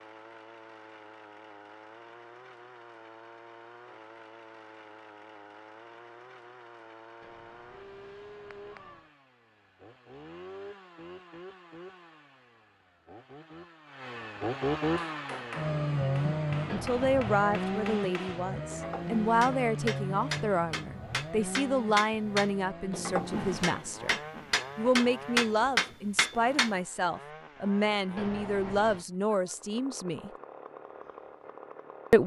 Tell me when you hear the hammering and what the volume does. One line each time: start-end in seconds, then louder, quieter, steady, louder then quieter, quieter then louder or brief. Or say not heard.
14.9-26.7 louder.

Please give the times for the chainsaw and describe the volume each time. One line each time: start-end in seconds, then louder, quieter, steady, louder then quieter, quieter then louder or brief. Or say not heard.
0.0-32.2 louder then quieter.